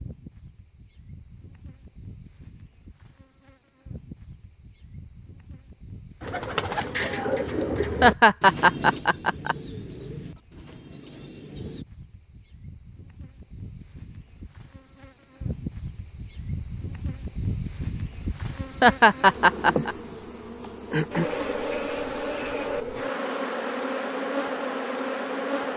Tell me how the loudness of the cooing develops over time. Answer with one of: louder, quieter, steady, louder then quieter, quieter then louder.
quieter.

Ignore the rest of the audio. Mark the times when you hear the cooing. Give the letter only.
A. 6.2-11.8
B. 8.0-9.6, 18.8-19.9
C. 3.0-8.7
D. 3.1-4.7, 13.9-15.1
A.